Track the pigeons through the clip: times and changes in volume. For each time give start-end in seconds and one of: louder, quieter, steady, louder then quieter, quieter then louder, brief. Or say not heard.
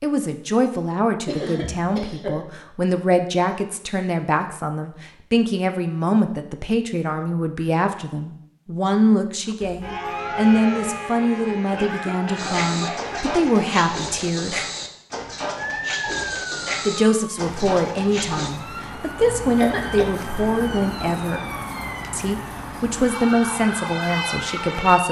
12.3-18.6 steady.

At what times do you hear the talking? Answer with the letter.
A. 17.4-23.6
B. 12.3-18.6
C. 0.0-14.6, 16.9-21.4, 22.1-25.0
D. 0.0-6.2
C.